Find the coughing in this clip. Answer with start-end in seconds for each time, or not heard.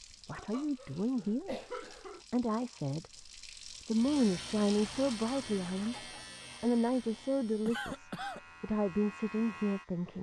0.3-2.2, 7.7-8.4.